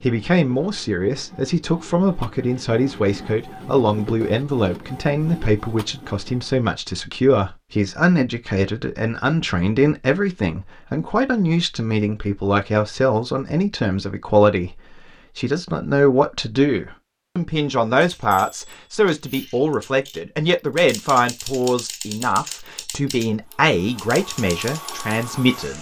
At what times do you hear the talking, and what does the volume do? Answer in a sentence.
You can hear the talking from 0.0 to 25.7 s, at a steady volume.